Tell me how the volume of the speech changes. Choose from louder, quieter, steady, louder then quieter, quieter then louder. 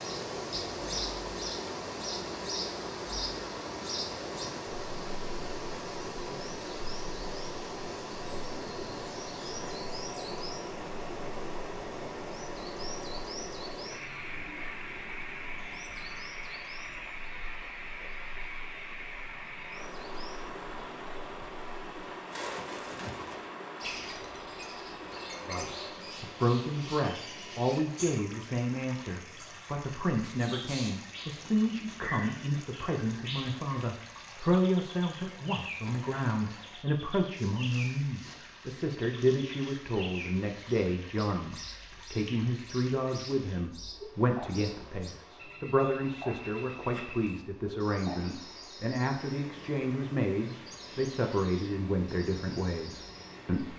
steady.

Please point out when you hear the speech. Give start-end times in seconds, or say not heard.
25.4-53.7.